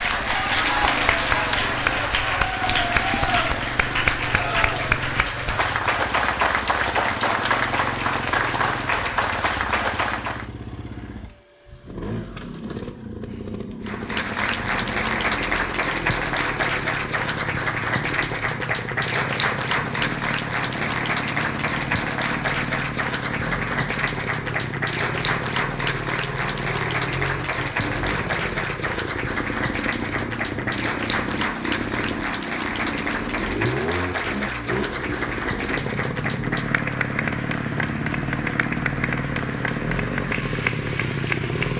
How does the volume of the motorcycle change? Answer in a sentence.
The volume of the motorcycle goes up.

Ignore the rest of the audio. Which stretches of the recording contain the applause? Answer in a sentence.
The applause can be heard from 0.0 to 10.4 s and from 13.8 to 41.7 s.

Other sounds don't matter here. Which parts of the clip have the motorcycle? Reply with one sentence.
The motorcycle can be heard from 0.0 to 41.7 s.